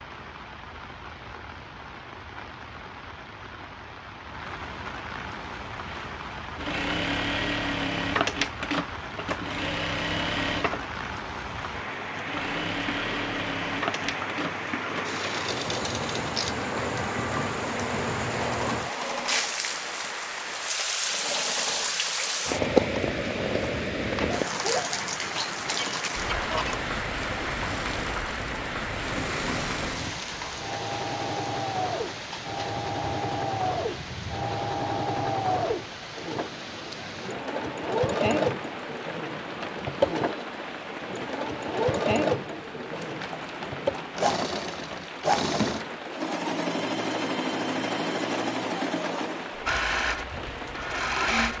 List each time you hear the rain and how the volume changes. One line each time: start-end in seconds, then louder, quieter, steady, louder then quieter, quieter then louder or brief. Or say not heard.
0.0-51.5 louder then quieter.